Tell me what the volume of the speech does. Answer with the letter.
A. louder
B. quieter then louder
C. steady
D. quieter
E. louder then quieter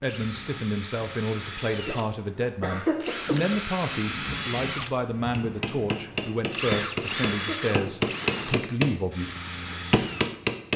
C.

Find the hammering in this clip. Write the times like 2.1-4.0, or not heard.
5.2-10.7.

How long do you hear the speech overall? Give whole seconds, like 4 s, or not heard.
9 s.